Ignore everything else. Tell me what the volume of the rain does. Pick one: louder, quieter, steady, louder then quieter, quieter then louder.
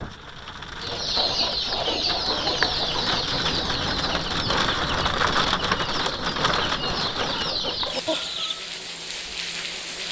louder then quieter.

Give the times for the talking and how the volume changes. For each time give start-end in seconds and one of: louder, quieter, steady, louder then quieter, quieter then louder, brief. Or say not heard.
not heard.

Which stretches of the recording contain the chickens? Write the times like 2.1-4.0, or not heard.
0.8-8.7.